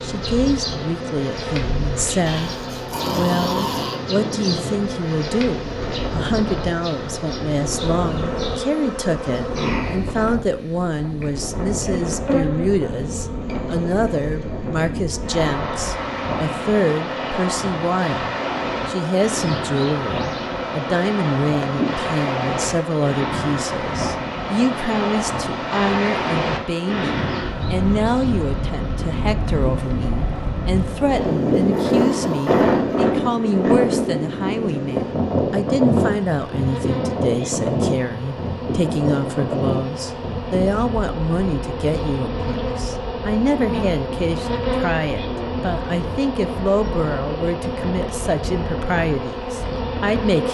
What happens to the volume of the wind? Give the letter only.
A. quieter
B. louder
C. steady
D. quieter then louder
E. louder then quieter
E.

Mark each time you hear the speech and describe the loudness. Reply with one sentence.
The speech can be heard from 0.0 to 50.4 s, at a steady volume.